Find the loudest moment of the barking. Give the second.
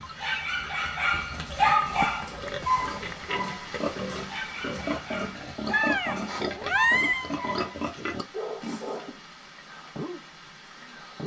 2 s.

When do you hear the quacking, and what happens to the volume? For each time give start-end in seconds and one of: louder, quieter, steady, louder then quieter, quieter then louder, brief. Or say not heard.
not heard.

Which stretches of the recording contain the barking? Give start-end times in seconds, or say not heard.
0.0-11.2.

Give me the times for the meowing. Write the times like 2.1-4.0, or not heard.
1.3-3.2, 5.7-7.3.